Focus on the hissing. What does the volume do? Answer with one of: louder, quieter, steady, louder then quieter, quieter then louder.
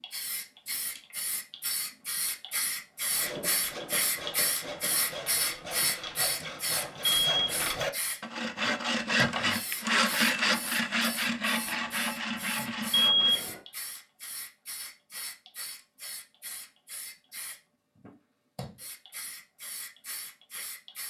quieter.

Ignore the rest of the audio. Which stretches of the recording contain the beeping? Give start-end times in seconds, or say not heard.
7.0-7.6, 12.9-13.5.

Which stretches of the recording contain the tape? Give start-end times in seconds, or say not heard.
not heard.